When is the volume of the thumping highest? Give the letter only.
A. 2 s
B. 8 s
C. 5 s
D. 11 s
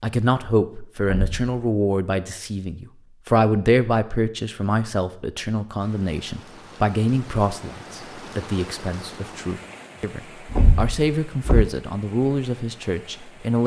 D.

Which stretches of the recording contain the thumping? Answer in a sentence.
The thumping can be heard from 1.1 to 1.5 s and from 10.5 to 11.7 s.